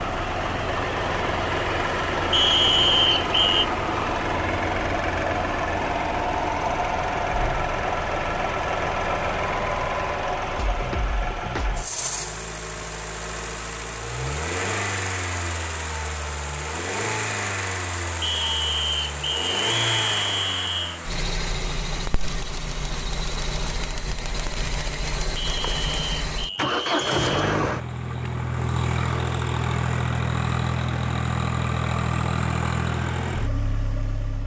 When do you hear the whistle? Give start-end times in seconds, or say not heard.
2.3-3.6, 18.2-21.0, 25.4-27.6.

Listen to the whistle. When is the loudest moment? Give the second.
3 s.